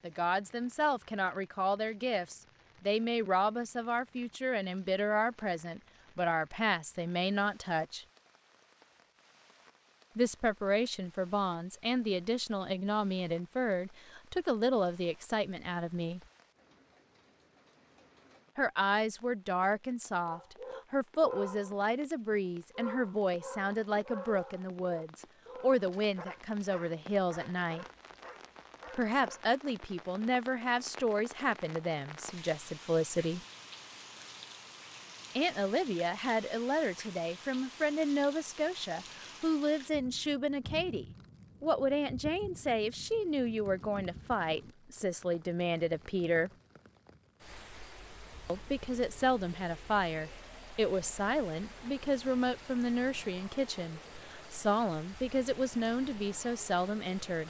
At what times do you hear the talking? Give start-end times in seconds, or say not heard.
0.0-8.1, 10.2-16.2, 18.6-27.9, 28.9-33.4, 35.4-46.5, 48.5-57.4.